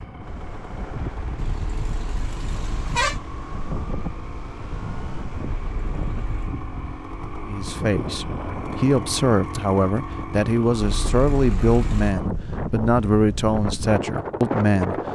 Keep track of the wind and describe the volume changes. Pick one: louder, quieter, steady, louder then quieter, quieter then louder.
louder.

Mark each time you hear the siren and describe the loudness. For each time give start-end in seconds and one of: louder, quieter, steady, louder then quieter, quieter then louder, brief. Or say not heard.
not heard.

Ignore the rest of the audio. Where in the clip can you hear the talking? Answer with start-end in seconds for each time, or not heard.
7.5-15.0.